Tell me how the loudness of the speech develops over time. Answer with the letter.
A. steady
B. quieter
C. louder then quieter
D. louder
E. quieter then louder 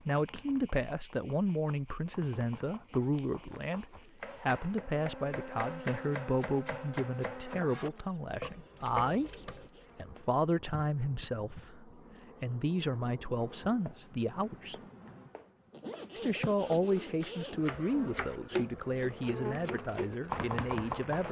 A.